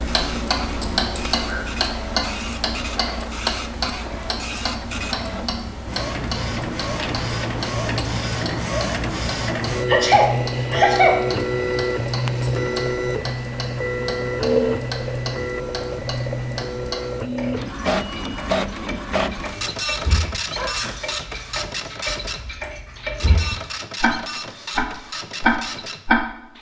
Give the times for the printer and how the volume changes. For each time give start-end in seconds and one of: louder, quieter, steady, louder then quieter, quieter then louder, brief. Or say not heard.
0.0-26.5 louder then quieter.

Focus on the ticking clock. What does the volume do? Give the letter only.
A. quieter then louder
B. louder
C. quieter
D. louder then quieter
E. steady
A.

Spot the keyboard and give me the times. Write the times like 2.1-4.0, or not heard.
not heard.